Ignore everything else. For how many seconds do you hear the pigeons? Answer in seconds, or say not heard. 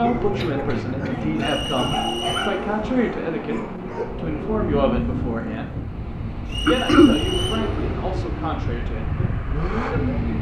not heard.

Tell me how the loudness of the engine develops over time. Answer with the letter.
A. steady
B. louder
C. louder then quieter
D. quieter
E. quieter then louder
A.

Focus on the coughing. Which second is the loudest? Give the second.
7 s.